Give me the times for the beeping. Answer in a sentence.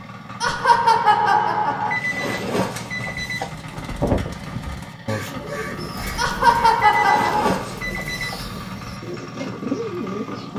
You can hear the beeping from 1.9 to 3.5 s and from 6.8 to 8.4 s.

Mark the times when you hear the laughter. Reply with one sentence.
You can hear the laughter from 0.4 to 1.9 s and from 6.2 to 7.5 s.